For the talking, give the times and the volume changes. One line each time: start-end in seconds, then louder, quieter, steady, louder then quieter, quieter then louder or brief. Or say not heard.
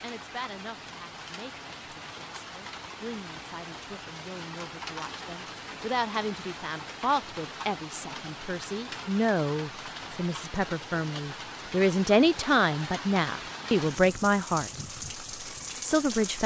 0.0-14.8 louder
15.8-16.4 brief.